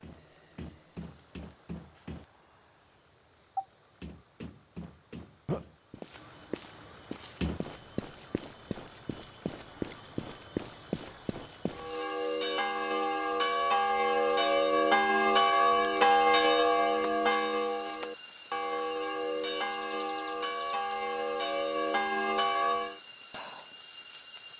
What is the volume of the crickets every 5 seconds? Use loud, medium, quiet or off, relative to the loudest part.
quiet, loud, loud, loud, loud.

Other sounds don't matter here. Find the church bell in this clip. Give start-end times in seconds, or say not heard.
11.7-23.0.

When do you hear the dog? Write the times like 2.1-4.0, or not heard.
not heard.